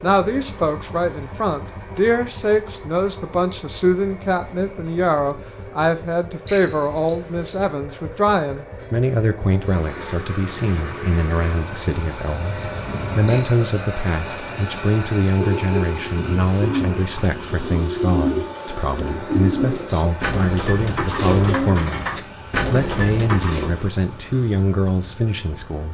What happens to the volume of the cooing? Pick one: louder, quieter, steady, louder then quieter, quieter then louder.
steady.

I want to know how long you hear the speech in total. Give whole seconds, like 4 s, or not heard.
25 s.